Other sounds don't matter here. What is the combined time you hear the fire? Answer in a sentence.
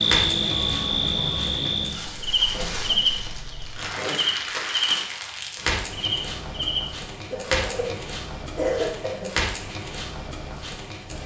The fire can be heard for 11 seconds in total.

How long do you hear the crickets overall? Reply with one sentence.
You can hear the crickets for 7 seconds altogether.